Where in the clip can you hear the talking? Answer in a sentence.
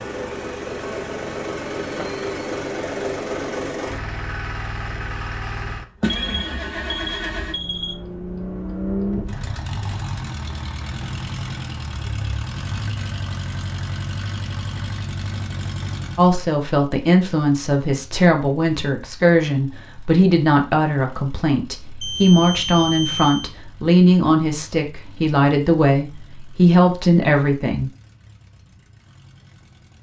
You can hear the talking from 16.1 to 27.9 s.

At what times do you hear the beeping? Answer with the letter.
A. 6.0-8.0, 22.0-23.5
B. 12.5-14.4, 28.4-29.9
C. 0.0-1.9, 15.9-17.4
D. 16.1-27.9
A.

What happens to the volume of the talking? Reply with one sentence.
The volume of the talking stays about the same.